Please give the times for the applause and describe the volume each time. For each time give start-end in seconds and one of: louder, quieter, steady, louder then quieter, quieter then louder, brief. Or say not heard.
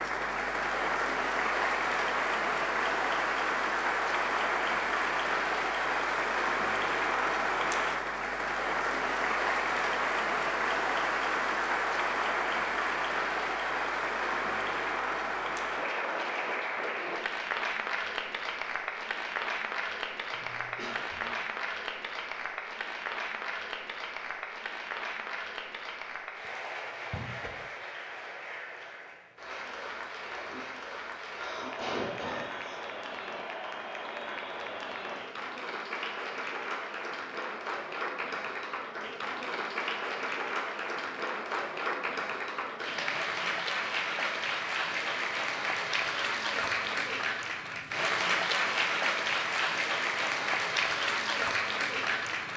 0.0-52.5 quieter then louder.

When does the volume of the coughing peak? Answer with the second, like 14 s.
32 s.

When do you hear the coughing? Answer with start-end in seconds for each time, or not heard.
20.3-21.3, 31.2-32.8.